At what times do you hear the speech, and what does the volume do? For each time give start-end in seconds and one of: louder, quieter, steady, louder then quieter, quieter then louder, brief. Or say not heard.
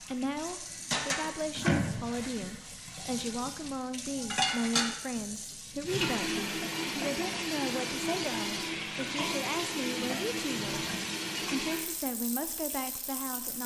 0.0-13.6 steady.